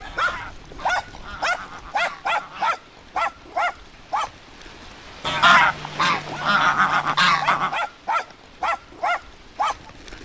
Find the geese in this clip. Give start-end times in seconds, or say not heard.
0.0-2.8, 5.2-7.8.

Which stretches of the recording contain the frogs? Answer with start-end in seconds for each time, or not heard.
not heard.